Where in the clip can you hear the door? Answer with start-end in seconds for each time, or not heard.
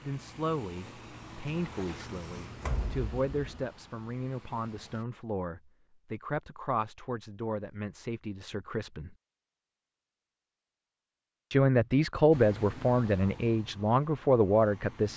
2.6-3.6.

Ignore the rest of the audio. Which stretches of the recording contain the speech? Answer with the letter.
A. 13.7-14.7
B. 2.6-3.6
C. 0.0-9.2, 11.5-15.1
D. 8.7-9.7
C.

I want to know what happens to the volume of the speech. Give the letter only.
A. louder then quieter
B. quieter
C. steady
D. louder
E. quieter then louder
D.